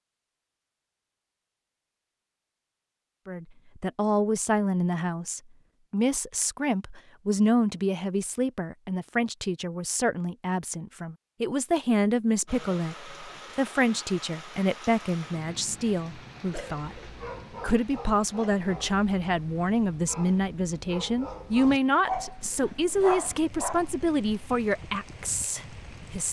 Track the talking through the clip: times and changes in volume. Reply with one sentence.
You can hear the talking from 3.2 to 26.2 s, at a steady volume.